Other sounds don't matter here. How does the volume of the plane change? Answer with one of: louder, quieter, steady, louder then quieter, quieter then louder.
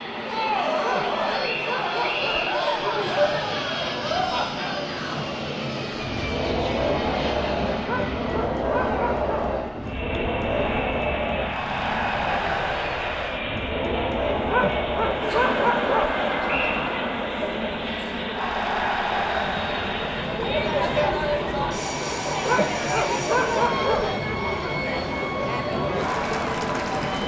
steady.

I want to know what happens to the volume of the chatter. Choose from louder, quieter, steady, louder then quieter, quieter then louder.
steady.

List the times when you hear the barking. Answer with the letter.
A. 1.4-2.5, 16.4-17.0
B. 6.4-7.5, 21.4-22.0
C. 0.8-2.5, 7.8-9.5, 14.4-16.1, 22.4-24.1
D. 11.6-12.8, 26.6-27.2
C.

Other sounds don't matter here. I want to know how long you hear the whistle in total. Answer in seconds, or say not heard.
2 s.